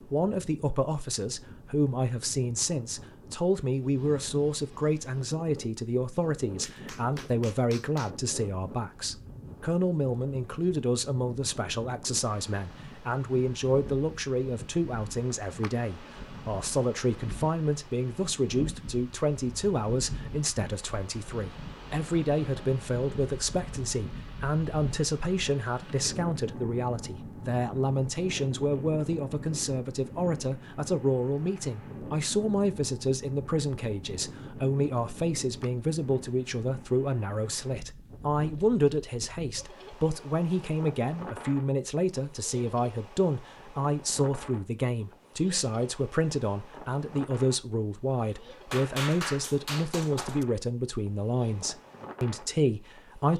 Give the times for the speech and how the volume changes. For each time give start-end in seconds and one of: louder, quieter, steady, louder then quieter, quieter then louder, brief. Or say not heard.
0.0-53.3 steady.